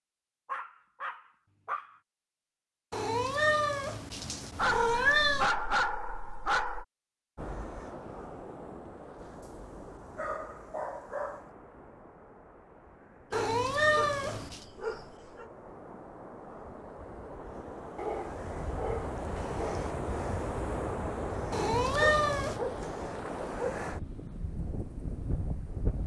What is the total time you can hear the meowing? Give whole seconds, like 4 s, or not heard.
5 s.